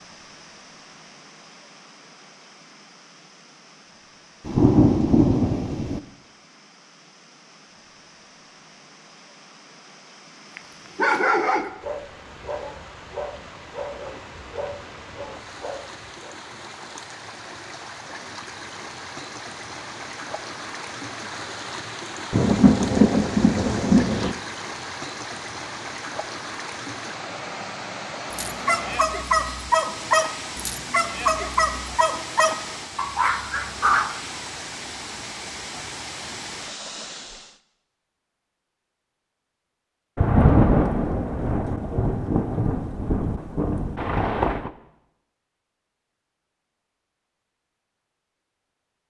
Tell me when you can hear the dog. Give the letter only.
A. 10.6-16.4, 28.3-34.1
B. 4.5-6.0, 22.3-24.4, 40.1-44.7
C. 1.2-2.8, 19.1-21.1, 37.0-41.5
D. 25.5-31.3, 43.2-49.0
A.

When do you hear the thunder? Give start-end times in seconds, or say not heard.
4.5-6.0, 22.3-24.4, 40.1-44.7.